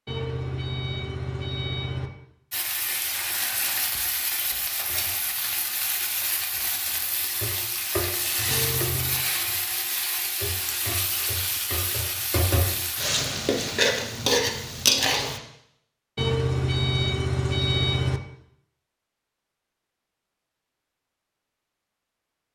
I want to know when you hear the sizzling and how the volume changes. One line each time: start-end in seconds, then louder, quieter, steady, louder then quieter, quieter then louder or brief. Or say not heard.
2.5-15.4 louder.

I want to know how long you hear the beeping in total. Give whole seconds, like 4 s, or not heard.
5 s.